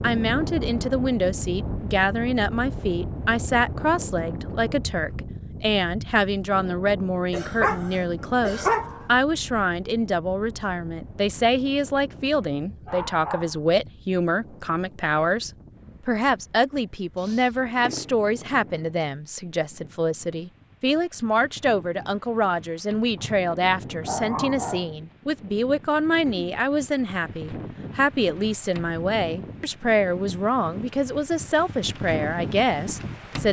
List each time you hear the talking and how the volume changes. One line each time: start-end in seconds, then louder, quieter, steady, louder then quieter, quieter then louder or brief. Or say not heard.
0.0-33.4 steady.